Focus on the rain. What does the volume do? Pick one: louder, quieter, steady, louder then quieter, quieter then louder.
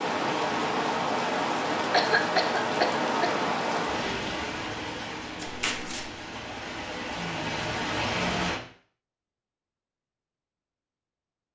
quieter then louder.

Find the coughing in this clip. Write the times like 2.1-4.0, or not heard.
1.9-3.5.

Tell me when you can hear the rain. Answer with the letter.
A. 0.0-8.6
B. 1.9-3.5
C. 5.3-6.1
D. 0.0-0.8
A.